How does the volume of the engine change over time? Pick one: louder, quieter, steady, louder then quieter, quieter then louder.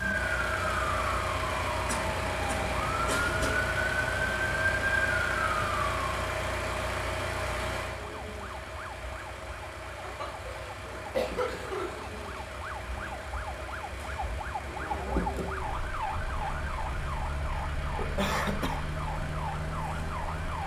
quieter.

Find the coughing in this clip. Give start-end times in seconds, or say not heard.
1.9-3.6, 10.0-12.0, 17.9-18.8.